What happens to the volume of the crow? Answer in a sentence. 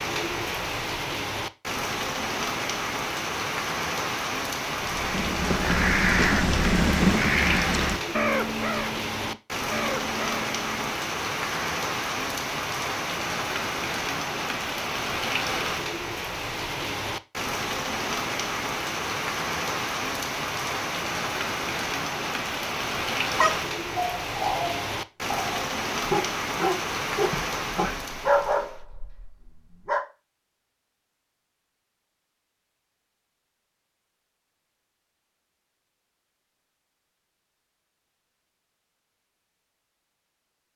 The volume of the crow goes down.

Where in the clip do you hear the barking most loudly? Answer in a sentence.
The loudest moment of the barking is at 28 seconds.